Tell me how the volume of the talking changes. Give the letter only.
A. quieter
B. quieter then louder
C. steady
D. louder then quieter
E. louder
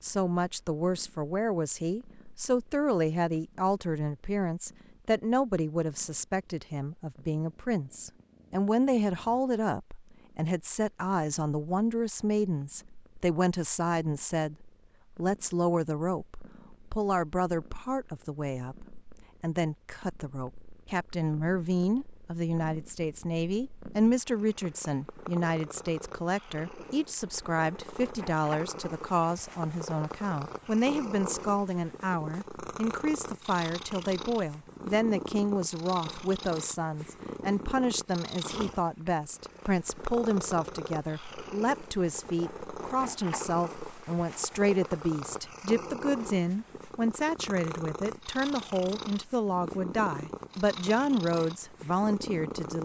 C.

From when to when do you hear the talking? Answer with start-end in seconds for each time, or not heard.
0.0-14.6, 15.2-52.7.